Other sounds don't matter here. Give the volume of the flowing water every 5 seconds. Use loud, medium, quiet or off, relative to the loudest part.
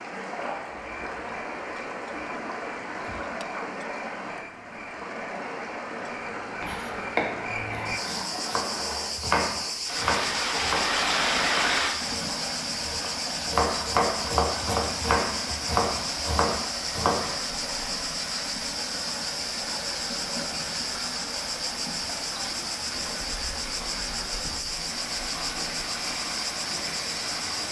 medium, medium, loud, medium, medium, medium.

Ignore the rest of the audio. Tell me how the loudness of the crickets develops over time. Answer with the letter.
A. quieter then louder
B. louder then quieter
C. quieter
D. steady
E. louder
E.